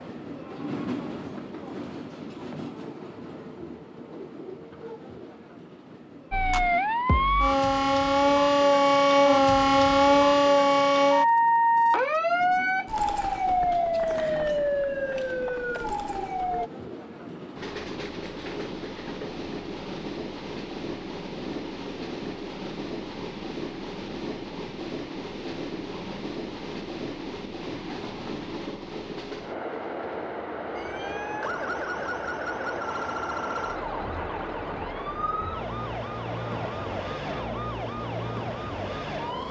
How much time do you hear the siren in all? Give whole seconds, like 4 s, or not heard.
19 s.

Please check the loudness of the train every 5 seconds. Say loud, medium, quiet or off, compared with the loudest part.
loud, medium, medium, loud, loud, loud, loud, loud.